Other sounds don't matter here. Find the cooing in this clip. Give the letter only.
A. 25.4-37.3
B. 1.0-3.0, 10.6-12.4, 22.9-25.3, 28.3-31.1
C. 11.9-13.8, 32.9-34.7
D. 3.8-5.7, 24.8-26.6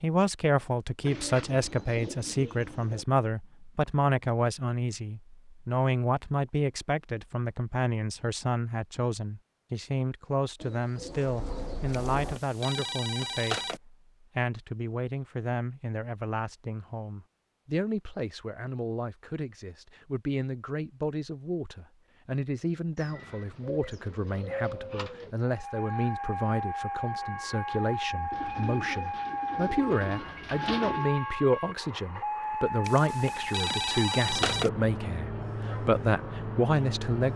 B.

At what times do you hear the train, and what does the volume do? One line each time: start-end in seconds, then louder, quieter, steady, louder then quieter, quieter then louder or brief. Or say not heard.
25.4-37.3 steady.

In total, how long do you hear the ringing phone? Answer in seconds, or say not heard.
4 s.